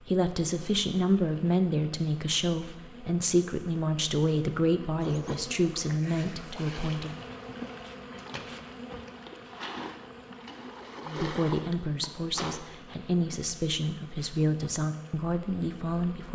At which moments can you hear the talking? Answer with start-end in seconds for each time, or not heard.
0.1-7.1, 11.1-16.3.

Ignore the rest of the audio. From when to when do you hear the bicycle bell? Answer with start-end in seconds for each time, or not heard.
not heard.